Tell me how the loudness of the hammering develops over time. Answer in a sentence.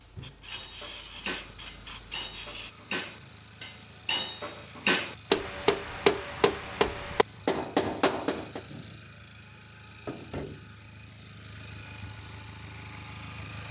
The loudness of the hammering goes up.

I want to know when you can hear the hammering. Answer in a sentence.
The hammering can be heard from 0.5 to 8.6 s.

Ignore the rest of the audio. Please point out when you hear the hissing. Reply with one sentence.
You can hear the hissing from 0.0 to 2.7 s.